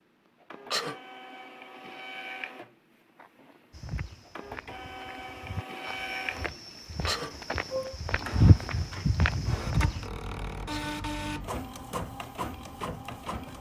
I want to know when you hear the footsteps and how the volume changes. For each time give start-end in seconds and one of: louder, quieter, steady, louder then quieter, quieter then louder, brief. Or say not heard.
3.7-10.1 louder then quieter.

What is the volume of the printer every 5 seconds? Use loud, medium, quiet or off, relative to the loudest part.
medium, loud, loud.